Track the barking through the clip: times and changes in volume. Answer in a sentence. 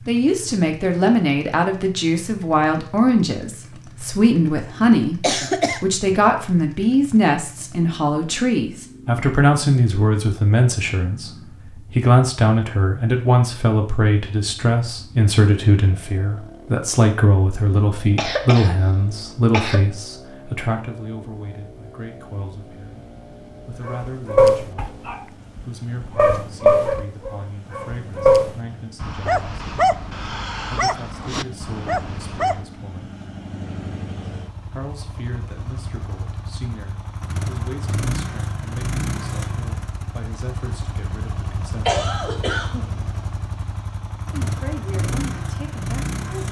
The barking can be heard from 23.9 to 32.6 s, getting quieter.